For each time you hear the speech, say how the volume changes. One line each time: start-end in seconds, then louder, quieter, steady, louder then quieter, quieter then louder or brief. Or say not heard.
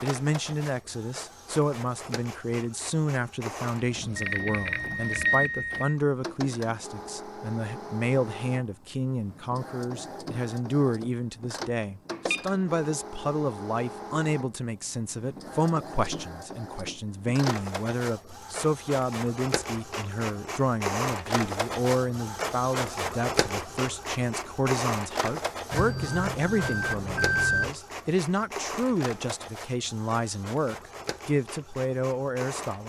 0.0-32.8 steady.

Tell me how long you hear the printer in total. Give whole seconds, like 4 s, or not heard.
33 s.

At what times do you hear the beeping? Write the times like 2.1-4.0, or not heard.
4.2-6.0, 12.1-12.8, 25.7-27.8.